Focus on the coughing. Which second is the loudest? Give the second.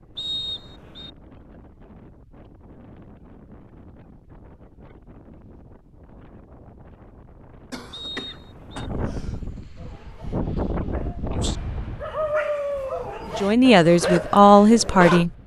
8 s.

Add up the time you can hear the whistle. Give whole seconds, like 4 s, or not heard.
2 s.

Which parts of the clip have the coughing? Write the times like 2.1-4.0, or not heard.
7.7-9.6.